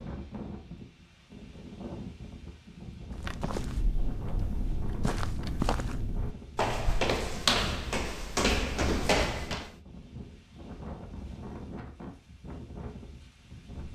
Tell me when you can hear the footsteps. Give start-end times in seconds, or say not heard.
3.1-9.8.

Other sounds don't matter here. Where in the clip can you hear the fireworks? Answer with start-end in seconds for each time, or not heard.
not heard.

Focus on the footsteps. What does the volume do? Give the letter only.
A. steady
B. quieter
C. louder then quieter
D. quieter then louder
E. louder
E.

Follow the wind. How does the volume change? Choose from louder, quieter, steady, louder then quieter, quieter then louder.
steady.